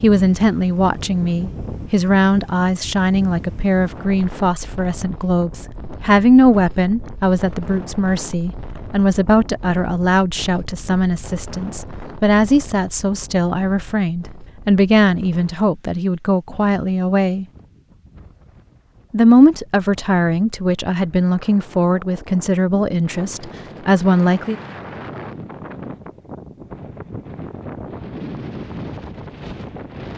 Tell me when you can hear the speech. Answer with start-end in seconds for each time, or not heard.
0.0-17.4, 19.1-24.6.